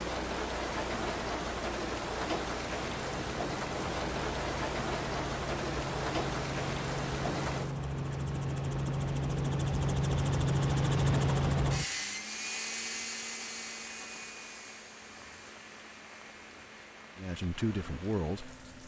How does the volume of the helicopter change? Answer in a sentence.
The volume of the helicopter goes up, then down.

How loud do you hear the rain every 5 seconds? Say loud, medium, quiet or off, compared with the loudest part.
loud, loud, quiet, quiet.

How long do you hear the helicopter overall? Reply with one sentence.
You can hear the helicopter for 16 seconds altogether.